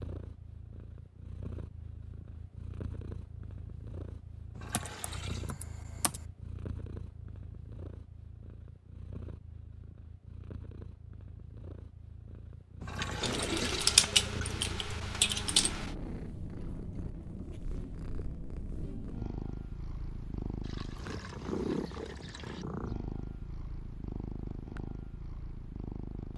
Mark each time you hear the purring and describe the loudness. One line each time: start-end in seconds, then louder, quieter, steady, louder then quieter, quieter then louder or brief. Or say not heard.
0.0-26.3 louder.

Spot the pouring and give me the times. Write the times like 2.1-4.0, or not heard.
4.5-5.5, 12.8-14.2, 20.6-22.6.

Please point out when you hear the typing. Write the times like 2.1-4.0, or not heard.
4.7-6.2, 13.2-15.9.